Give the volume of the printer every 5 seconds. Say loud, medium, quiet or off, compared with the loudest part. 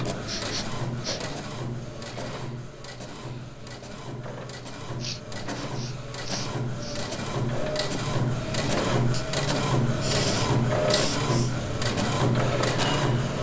medium, loud, loud.